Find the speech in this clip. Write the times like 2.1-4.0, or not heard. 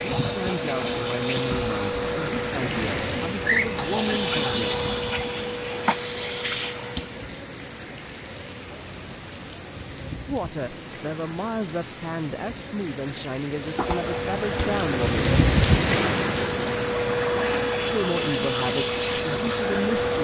0.2-4.8, 10.2-15.2, 17.9-20.1.